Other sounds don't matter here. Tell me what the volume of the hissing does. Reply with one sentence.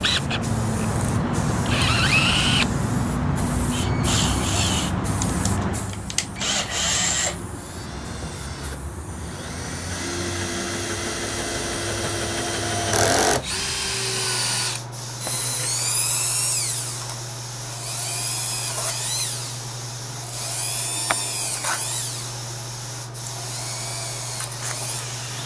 The volume of the hissing goes down.